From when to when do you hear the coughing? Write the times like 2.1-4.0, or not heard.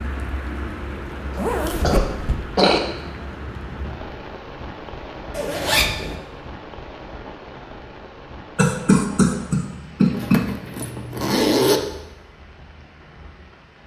1.8-2.8, 8.6-10.4.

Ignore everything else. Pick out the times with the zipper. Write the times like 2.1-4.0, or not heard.
1.4-2.4, 5.3-6.2, 10.1-11.8.